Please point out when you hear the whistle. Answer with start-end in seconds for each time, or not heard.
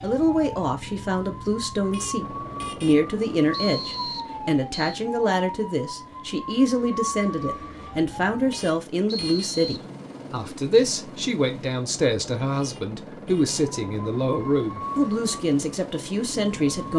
3.5-5.0, 9.1-9.8.